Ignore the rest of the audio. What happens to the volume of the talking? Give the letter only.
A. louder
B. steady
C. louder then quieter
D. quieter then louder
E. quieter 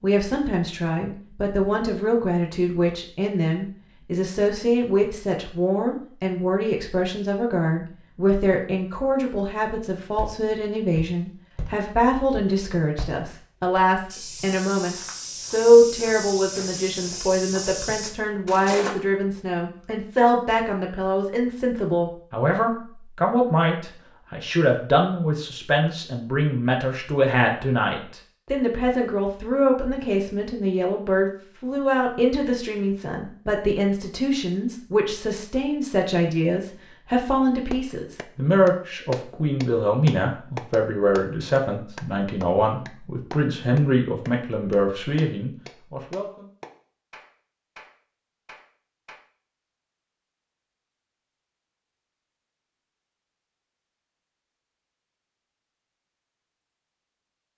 B.